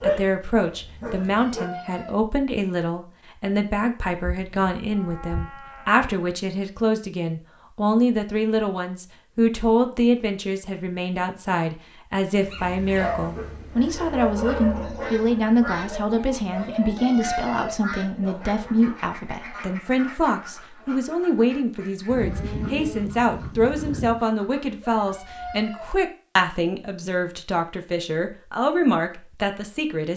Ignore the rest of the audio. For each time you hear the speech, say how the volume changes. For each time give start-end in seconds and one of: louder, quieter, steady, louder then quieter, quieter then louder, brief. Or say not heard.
0.0-30.1 steady.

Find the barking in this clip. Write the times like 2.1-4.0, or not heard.
0.0-1.7, 12.4-19.0.